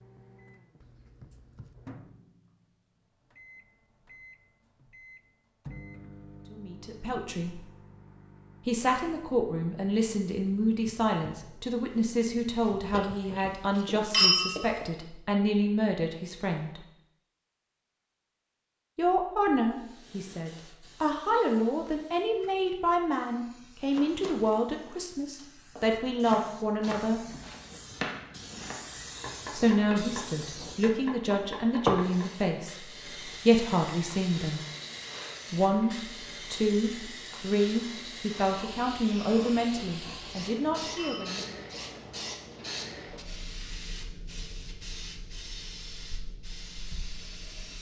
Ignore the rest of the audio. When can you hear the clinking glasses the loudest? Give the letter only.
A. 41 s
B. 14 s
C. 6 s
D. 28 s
B.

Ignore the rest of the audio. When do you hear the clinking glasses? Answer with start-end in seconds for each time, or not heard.
12.9-14.8, 39.7-41.6.